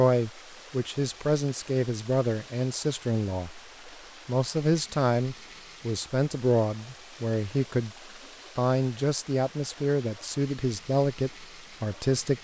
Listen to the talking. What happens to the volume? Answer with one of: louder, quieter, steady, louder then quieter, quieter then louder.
steady.